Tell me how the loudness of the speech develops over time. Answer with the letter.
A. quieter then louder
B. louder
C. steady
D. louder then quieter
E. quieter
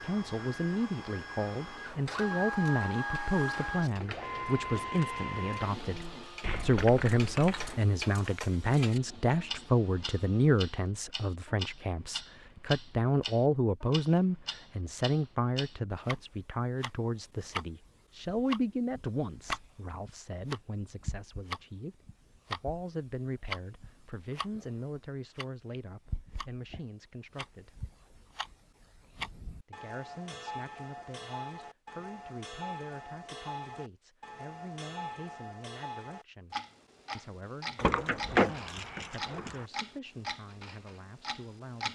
E.